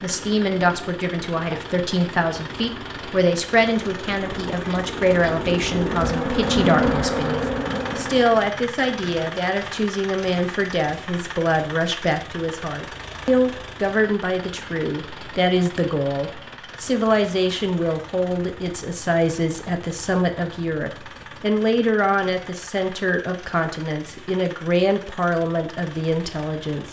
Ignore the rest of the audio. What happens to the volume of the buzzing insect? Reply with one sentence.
The loudness of the buzzing insect goes up.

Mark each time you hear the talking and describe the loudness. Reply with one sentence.
The talking can be heard from 0.0 to 26.8 s, at a steady volume.